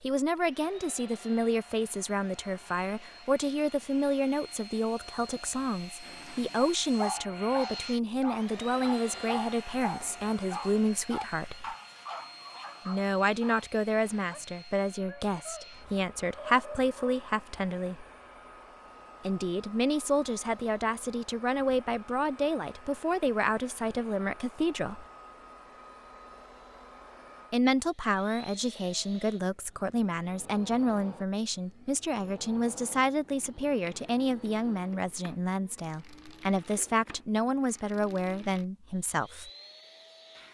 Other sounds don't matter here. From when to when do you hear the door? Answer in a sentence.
You can't hear the door here.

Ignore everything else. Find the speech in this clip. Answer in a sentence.
The speech can be heard from 0.0 to 11.8 s, from 12.8 to 18.1 s, from 19.2 to 25.1 s and from 27.5 to 39.5 s.